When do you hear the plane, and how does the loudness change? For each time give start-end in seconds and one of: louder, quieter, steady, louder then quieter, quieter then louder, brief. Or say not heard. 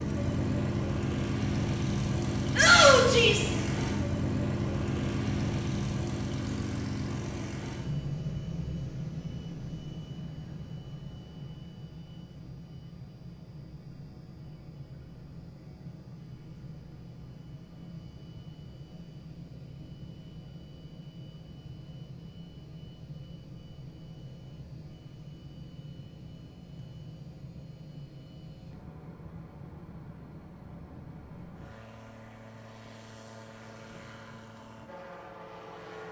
0.0-36.0 quieter.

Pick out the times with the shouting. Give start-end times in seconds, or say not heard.
2.5-3.5.